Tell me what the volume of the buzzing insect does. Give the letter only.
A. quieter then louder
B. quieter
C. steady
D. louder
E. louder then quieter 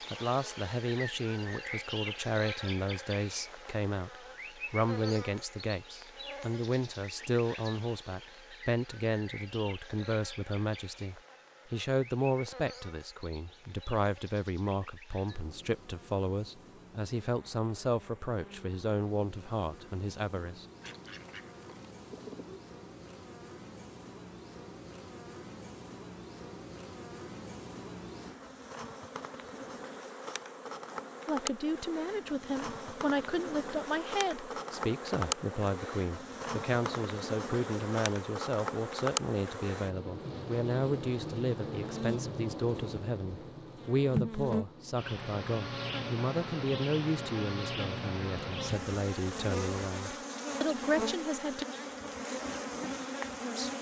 A.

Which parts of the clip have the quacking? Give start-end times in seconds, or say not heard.
20.8-22.6.